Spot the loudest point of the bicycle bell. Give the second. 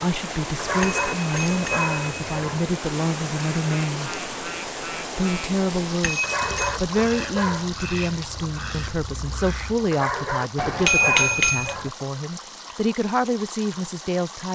11 s.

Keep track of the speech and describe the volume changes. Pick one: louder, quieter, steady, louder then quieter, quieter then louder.
steady.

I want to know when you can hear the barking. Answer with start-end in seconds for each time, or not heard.
0.6-2.6, 6.2-7.7, 9.9-11.9.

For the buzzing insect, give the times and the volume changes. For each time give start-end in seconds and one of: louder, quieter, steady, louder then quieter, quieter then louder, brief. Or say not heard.
not heard.